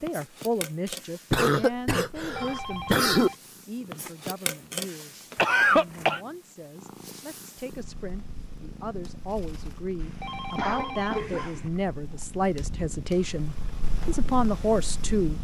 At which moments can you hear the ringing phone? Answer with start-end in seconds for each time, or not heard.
2.1-3.4, 10.0-11.7.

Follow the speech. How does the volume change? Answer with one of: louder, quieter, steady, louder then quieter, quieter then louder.
quieter then louder.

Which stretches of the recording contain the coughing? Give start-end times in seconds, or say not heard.
1.3-3.3, 5.3-6.2, 10.6-11.7.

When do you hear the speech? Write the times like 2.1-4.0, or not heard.
0.0-15.3.